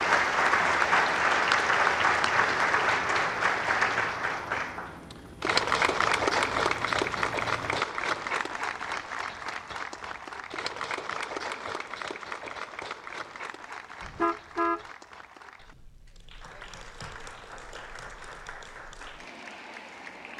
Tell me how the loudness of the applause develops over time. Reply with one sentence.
The loudness of the applause goes down.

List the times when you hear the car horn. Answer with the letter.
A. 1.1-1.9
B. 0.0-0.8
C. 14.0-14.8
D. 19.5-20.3
C.